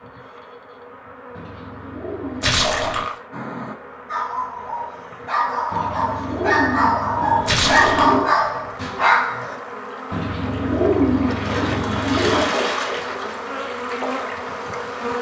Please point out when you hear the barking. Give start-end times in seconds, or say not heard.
3.3-9.6.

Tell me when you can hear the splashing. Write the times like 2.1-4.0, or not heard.
2.4-3.1, 7.5-8.2, 11.2-13.4.